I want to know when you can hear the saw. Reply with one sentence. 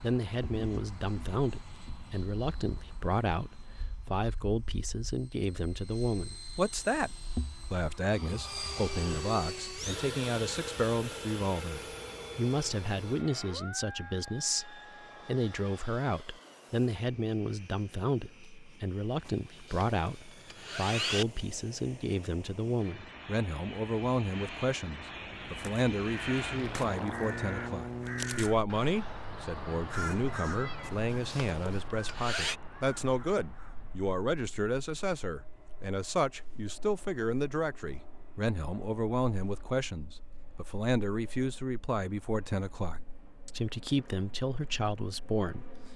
The saw can be heard from 19.2 to 21.2 s and from 30.8 to 32.5 s.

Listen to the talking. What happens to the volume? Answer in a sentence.
The loudness of the talking stays about the same.